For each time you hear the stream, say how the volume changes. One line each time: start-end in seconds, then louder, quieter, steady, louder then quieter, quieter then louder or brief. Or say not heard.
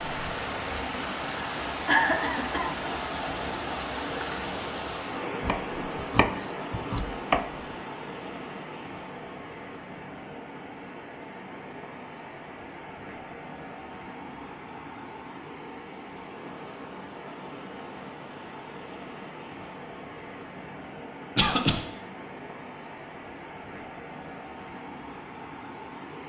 0.0-26.2 quieter.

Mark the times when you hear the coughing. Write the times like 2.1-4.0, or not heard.
1.9-2.7, 21.4-21.8.